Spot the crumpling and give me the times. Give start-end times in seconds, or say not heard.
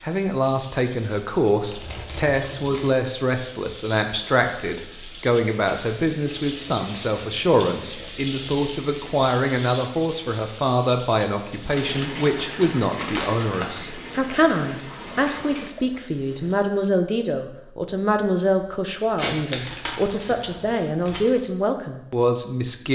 1.6-2.9, 11.7-13.7, 19.1-21.3.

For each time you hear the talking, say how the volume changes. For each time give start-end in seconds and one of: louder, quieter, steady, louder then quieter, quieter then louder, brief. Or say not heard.
0.0-22.9 steady.